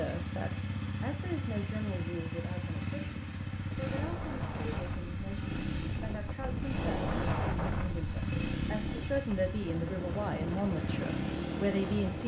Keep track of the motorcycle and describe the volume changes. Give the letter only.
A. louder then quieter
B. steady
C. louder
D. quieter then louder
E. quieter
B.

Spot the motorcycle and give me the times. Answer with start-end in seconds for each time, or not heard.
0.0-12.2.